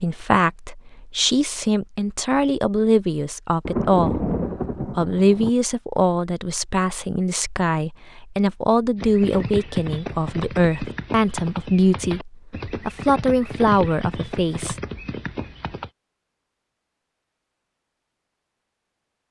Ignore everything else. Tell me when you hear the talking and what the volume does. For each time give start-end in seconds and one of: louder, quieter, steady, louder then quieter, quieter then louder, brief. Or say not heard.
0.0-14.8 steady.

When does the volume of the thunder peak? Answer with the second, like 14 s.
4 s.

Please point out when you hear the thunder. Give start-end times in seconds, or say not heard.
3.6-5.5.